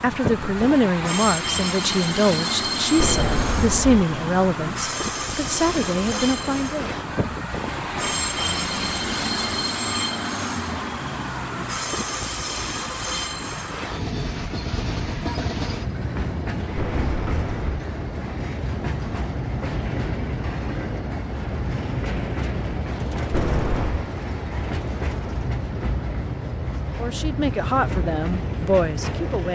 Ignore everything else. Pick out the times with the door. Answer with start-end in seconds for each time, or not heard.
3.0-4.0, 16.8-17.8, 23.3-24.1.